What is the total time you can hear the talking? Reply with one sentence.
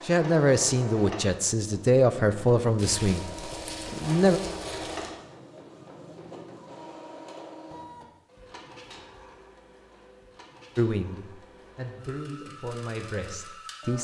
You can hear the talking for 8 seconds altogether.